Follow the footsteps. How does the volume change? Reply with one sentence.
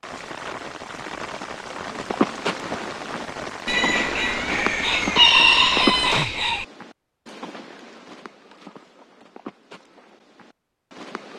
The volume of the footsteps goes down.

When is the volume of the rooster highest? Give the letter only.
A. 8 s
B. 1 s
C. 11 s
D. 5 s
D.